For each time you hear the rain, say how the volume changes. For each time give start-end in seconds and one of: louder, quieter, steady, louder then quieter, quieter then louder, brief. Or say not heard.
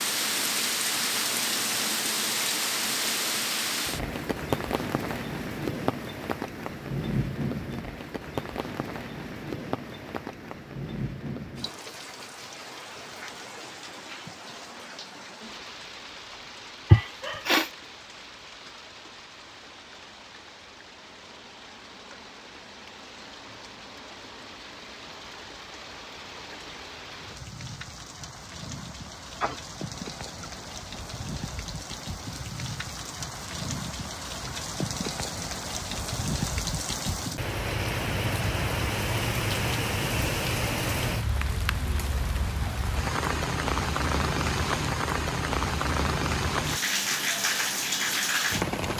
0.0-48.9 quieter then louder.